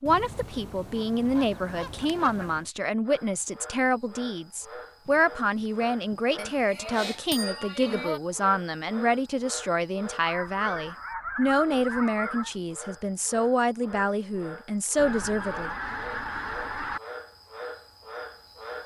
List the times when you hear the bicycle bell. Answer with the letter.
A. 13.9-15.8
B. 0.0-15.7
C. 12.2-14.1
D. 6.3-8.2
D.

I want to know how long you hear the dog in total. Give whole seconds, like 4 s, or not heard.
not heard.